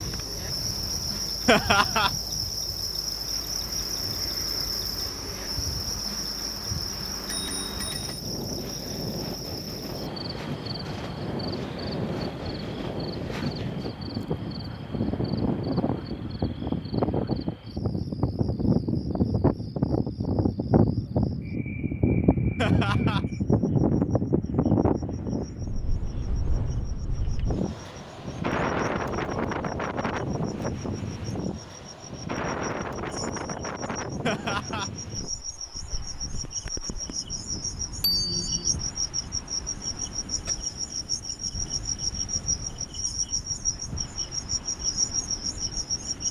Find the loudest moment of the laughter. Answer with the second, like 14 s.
2 s.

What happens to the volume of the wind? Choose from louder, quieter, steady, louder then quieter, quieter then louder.
louder then quieter.